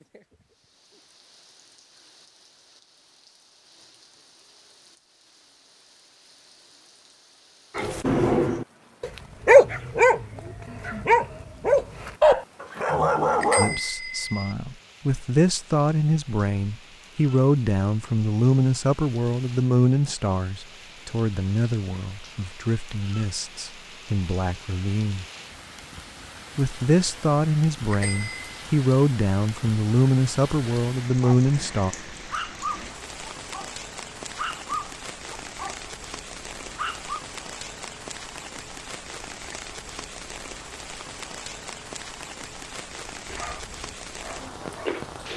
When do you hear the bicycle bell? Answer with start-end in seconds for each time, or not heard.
13.4-14.5, 27.9-28.6.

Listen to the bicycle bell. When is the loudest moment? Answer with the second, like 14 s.
14 s.